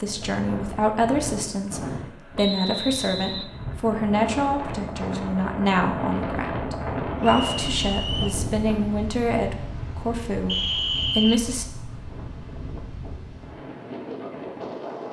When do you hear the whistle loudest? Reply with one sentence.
The volume of the whistle peaks at 11 seconds.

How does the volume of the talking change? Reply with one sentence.
The loudness of the talking stays about the same.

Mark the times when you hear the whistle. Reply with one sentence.
You can hear the whistle from 2.4 to 3.5 s, from 7.2 to 8.3 s and from 10.4 to 11.6 s.